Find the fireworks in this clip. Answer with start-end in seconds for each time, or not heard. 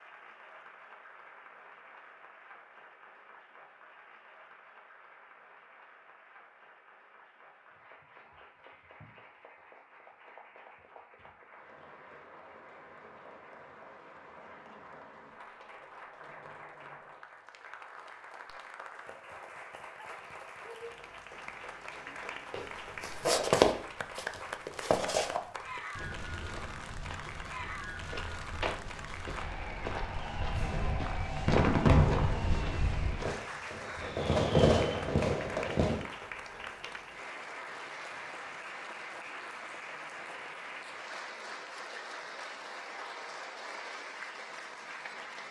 30.6-36.0.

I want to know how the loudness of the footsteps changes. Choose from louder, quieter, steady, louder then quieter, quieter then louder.
quieter then louder.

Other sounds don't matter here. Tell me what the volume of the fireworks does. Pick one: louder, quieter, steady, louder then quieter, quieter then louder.
quieter then louder.